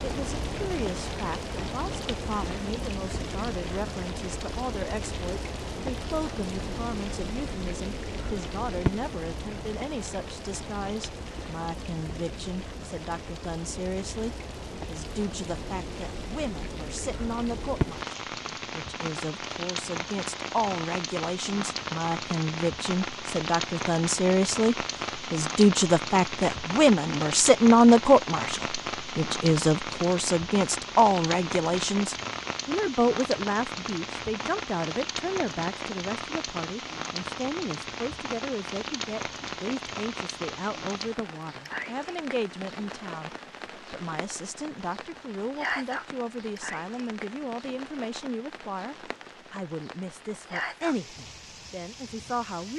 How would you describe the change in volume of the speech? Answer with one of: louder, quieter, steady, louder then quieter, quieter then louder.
louder then quieter.